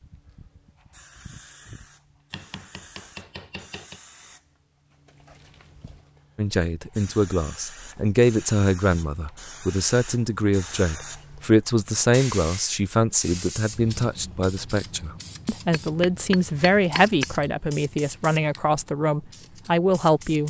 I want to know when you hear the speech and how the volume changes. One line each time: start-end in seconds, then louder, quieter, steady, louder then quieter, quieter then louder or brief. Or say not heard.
6.3-20.4 steady.